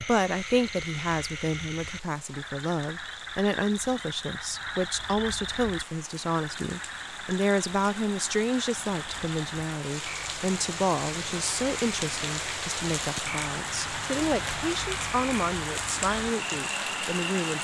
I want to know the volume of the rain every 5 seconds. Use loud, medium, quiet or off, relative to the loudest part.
quiet, medium, loud, loud.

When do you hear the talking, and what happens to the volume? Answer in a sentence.
You can hear the talking from 0.0 to 17.5 s, at a steady volume.